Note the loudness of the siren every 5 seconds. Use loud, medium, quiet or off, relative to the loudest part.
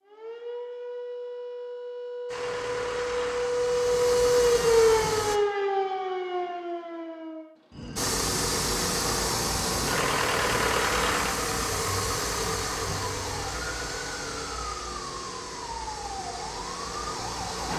loud, medium, quiet, quiet.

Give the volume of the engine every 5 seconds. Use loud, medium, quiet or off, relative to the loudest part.
medium, loud, loud, medium.